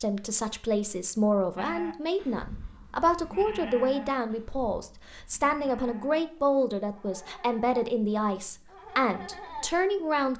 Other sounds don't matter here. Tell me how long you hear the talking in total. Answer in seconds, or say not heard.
10 s.